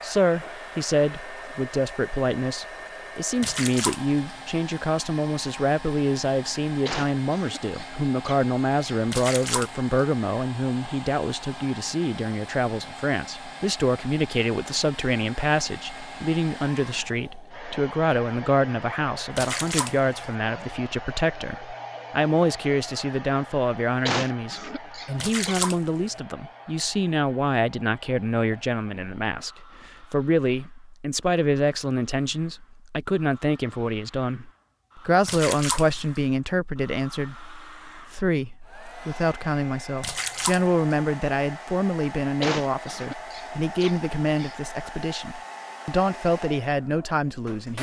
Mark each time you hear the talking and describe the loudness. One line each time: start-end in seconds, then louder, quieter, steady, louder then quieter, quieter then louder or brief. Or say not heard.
0.0-47.7 steady.